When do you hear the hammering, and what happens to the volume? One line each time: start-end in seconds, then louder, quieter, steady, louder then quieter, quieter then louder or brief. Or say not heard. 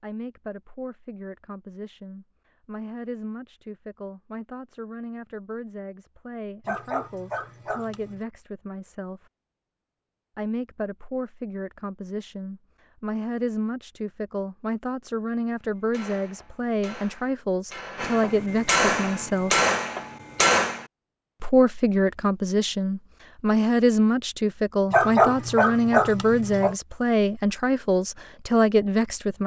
15.8-20.9 louder.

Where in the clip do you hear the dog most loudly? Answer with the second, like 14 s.
25 s.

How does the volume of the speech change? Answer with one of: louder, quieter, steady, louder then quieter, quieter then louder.
louder.